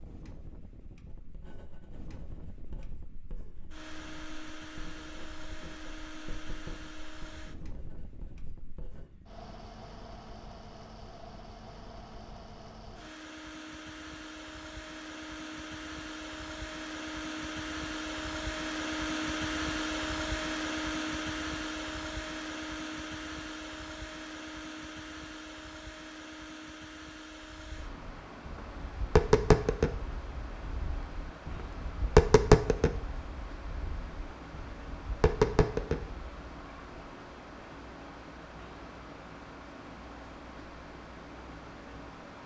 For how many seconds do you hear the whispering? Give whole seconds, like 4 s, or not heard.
not heard.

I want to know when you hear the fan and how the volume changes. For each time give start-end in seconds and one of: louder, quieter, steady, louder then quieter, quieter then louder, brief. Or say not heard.
0.0-42.4 louder then quieter.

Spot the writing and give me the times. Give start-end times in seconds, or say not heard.
1.1-9.1.